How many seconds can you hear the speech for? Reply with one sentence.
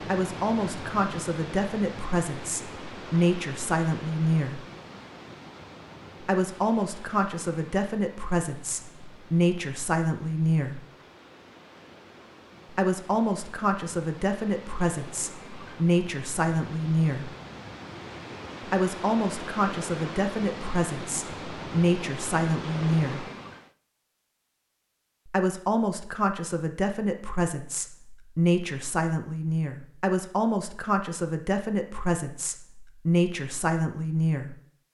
The speech can be heard for 28 seconds in total.